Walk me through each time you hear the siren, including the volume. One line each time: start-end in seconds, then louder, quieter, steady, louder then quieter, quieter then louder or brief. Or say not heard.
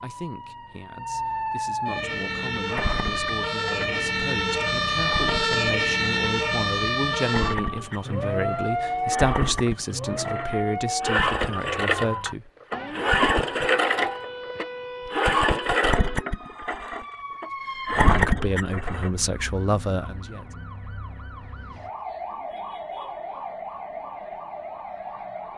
0.0-25.5 quieter.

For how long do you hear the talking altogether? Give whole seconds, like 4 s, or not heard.
15 s.